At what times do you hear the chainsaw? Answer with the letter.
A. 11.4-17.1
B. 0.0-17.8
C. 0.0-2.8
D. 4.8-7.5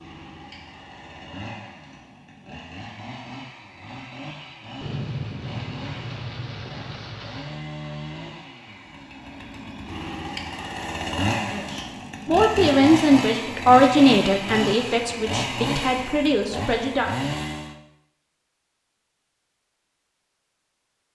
B.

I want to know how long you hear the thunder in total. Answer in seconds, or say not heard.
3 s.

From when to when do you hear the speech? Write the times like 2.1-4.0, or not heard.
11.4-17.1.